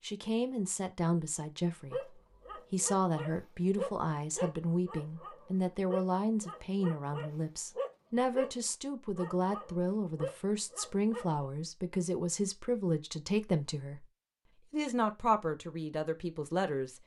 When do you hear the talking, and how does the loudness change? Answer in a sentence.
You can hear the talking briefly from 0.0 to 2.0 s; from 2.7 to 14.1 s, at a steady volume; and briefly from 14.7 to 17.0 s.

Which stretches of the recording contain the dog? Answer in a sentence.
The dog can be heard from 1.9 to 11.4 s.